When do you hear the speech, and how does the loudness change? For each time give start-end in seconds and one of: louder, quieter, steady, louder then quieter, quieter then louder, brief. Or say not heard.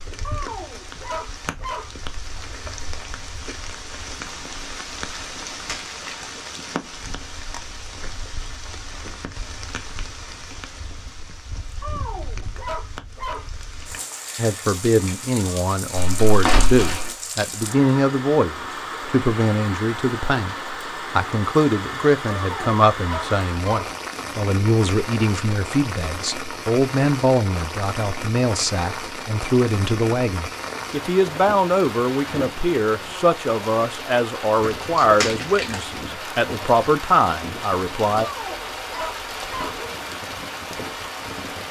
14.3-38.3 steady.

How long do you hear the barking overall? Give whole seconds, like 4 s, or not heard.
7 s.